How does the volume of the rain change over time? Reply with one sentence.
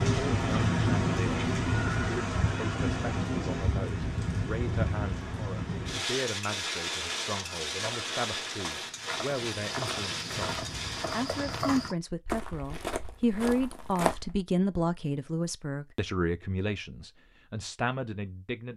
The loudness of the rain goes down.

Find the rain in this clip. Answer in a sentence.
The rain can be heard from 0.0 to 11.7 s.